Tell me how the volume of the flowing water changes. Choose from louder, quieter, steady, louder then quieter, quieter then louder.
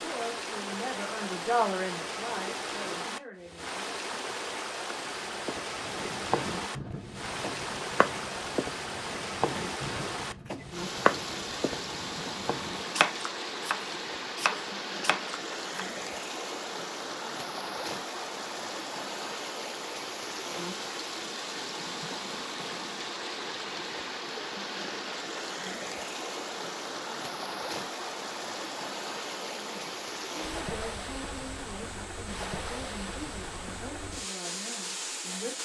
steady.